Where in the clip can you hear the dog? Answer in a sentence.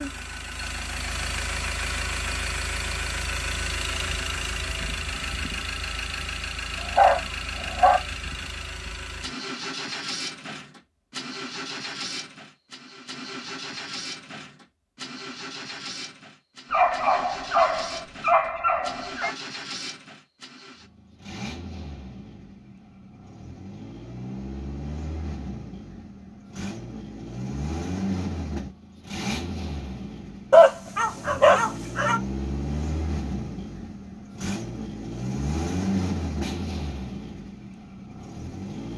You can hear the dog from 6.8 to 8.0 s, from 16.7 to 19.4 s and from 30.5 to 32.2 s.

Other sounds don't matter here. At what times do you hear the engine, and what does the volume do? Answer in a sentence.
You can hear the engine from 0.0 to 38.9 s, getting quieter then louder.